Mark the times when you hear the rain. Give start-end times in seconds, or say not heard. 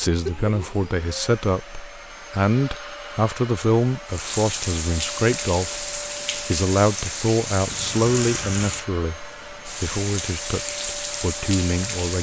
4.0-12.1.